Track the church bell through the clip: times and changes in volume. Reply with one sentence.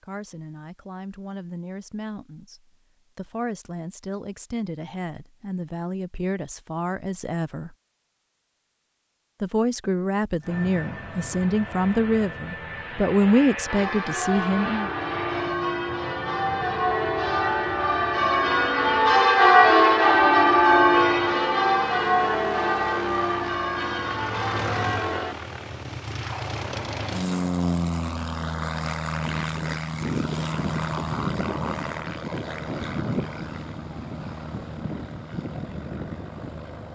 The church bell can be heard from 13.7 to 25.4 s, getting louder then quieter.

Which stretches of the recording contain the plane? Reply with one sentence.
You can hear the plane from 10.4 to 36.8 s.